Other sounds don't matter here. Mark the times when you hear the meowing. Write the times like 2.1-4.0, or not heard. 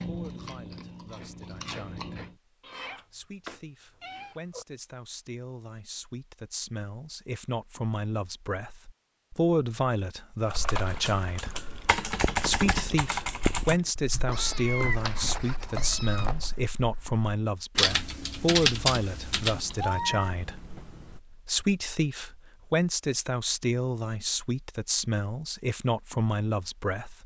2.6-4.7, 14.3-16.3, 19.4-21.2.